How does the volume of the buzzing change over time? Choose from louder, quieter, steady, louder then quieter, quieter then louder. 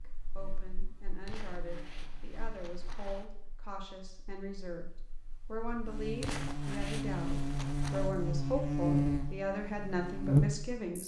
quieter then louder.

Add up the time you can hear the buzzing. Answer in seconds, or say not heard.
11 s.